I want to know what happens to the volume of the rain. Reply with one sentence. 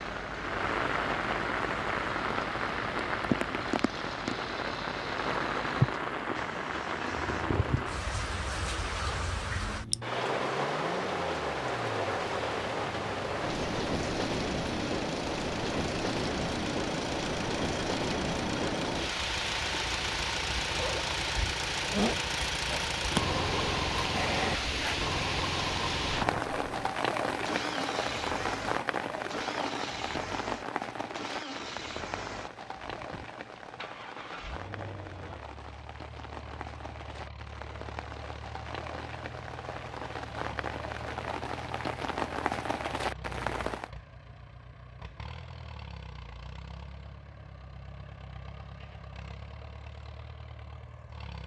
The volume of the rain goes down.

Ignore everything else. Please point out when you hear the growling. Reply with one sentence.
The growling can be heard from 23.9 to 25.1 s.